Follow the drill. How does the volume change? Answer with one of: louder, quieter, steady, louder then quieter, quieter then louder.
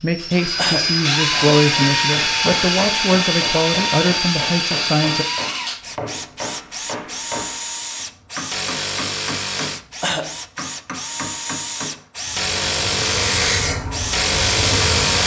quieter then louder.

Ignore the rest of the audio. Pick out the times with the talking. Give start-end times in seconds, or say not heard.
0.0-5.2.